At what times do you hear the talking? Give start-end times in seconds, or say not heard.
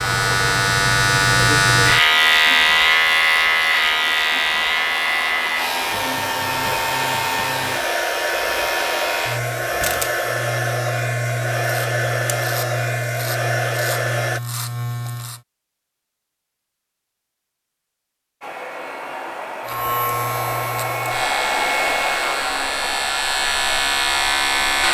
not heard.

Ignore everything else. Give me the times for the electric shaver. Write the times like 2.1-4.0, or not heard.
0.0-15.4, 19.6-24.8.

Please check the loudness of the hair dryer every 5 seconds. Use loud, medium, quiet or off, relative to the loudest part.
medium, loud, loud, medium, loud.